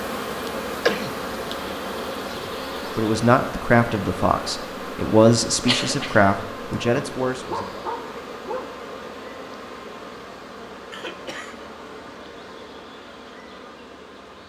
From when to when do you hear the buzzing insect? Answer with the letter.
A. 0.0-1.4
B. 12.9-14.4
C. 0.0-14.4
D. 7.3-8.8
C.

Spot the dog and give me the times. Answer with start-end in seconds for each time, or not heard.
7.3-8.8.